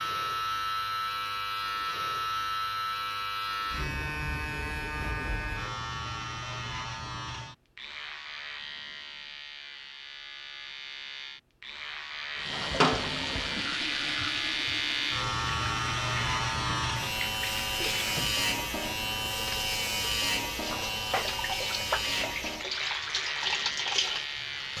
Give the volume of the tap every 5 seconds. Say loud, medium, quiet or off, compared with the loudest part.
off, off, loud, medium, loud.